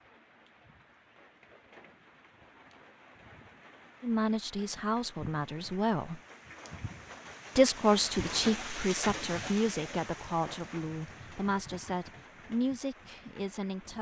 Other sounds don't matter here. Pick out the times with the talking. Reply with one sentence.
You can hear the talking from 4.0 to 6.2 s and from 7.5 to 13.9 s.